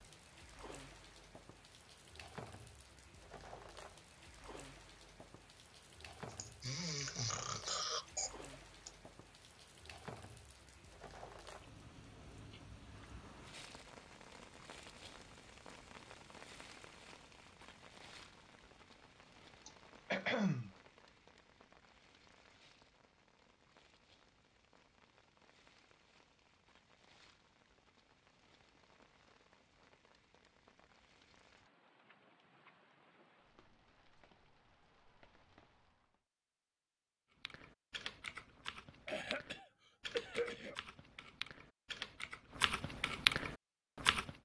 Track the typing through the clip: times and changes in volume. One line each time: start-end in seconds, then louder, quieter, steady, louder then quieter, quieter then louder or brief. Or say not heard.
37.4-44.4 louder.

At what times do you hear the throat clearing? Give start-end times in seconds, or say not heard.
6.3-8.9, 19.6-20.7, 39.0-40.8.